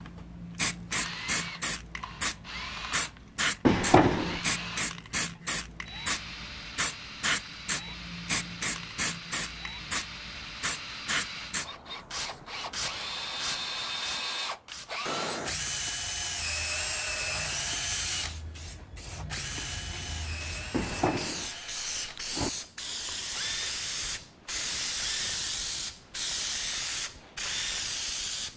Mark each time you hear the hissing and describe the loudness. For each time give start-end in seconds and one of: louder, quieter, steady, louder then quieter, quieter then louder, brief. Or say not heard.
0.0-28.5 quieter then louder.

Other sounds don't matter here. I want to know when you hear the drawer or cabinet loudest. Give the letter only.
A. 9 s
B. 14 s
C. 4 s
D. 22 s
C.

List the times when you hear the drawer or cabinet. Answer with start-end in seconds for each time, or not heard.
3.6-4.4, 20.7-22.5.